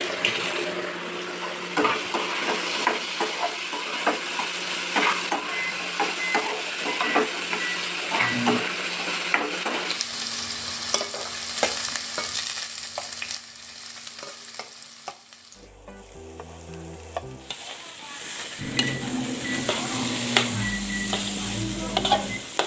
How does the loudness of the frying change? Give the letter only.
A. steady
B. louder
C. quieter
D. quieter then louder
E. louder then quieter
D.